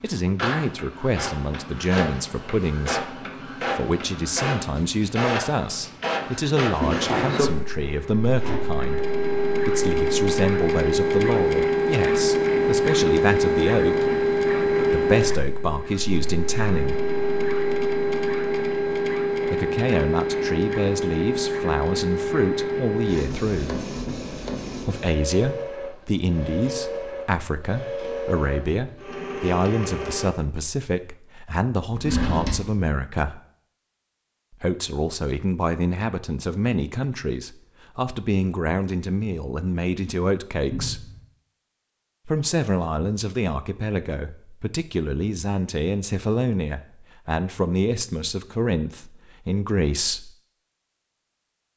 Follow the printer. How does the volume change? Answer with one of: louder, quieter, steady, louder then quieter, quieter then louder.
louder then quieter.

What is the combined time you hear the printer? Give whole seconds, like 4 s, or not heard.
30 s.